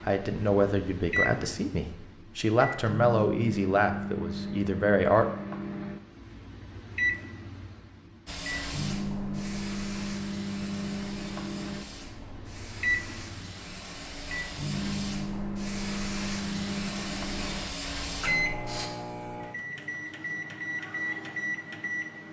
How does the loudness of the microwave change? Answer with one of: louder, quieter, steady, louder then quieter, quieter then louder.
steady.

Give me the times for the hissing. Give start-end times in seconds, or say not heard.
8.2-18.9.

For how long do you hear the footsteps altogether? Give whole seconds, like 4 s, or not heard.
not heard.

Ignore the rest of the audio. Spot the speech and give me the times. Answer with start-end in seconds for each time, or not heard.
0.0-5.3.